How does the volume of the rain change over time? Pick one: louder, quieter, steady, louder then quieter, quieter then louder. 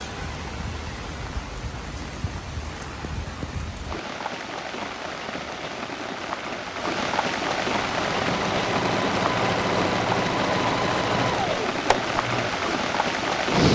louder.